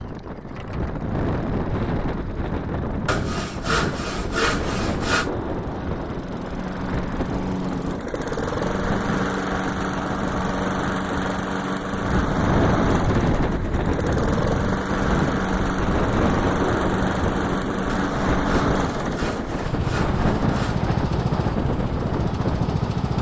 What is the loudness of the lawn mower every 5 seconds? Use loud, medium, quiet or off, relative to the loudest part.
quiet, loud, loud, loud, loud.